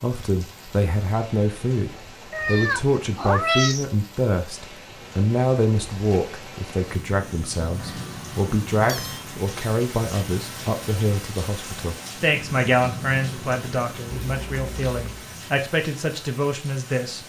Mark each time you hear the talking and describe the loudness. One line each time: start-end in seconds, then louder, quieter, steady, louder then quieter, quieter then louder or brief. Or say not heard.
0.0-17.2 steady.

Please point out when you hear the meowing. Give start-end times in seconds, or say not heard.
2.3-3.9, 7.8-9.2, 14.1-15.3.